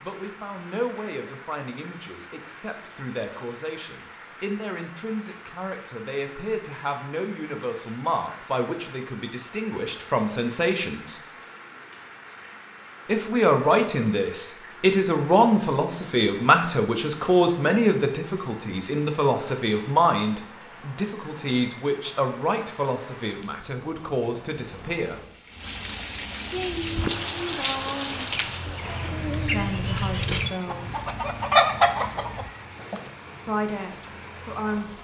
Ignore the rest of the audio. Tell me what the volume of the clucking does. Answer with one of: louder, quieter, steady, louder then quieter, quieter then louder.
louder.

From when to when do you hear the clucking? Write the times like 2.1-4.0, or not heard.
26.6-33.1.